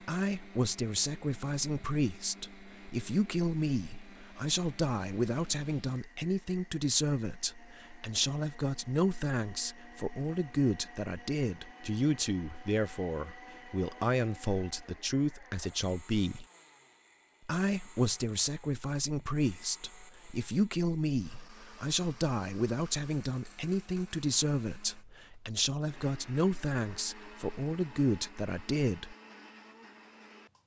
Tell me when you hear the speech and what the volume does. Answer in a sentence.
The speech can be heard from 0.1 to 16.4 s, at a steady volume; and from 17.4 to 29.1 s, at a steady volume.